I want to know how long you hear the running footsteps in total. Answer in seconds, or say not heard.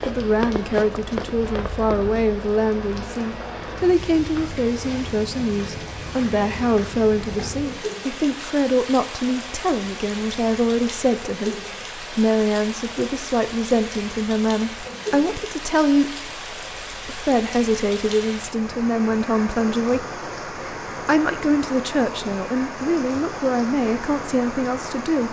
2 s.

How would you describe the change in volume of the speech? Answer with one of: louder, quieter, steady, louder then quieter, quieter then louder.
steady.